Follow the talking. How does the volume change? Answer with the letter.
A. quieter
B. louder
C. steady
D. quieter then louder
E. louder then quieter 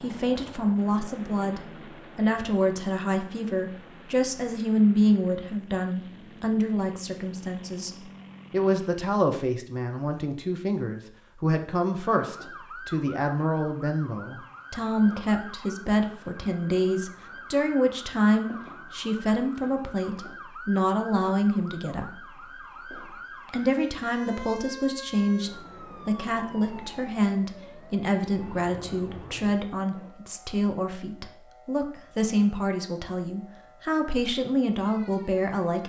C.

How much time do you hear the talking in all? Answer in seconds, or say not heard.
34 s.